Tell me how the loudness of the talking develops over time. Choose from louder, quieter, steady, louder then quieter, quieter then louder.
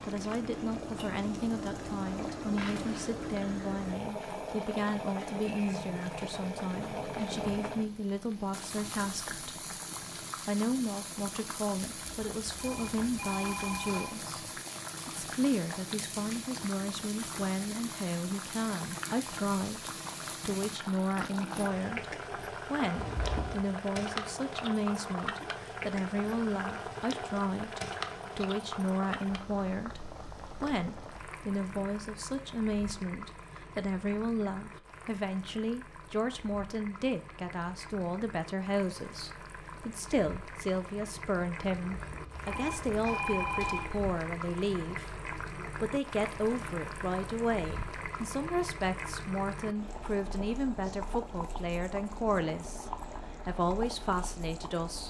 steady.